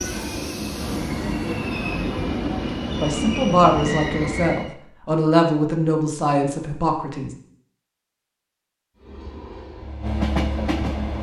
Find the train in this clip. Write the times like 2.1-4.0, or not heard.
0.0-4.8, 8.9-11.1.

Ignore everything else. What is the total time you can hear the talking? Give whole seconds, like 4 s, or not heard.
4 s.